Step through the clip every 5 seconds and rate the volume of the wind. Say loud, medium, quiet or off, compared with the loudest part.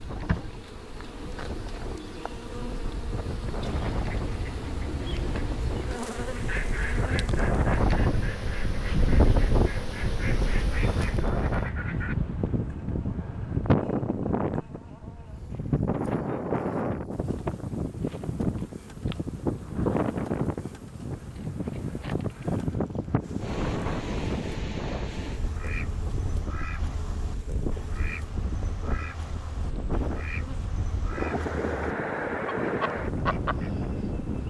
medium, loud, loud, loud, loud, medium, loud.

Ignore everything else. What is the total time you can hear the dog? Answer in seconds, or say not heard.
not heard.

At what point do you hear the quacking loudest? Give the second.
33 s.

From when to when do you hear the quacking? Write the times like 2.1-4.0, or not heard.
3.9-12.2, 25.4-33.9.